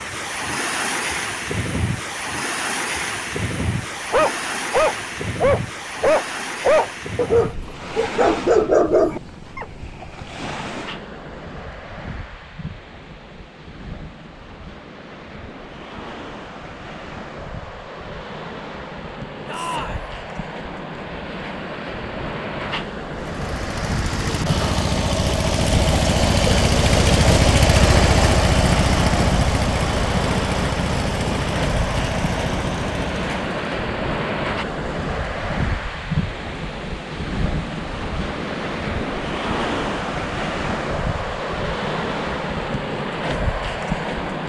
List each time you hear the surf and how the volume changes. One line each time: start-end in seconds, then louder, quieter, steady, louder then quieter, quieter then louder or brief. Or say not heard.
0.0-44.4 quieter then louder.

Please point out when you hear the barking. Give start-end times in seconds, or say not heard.
3.6-9.7.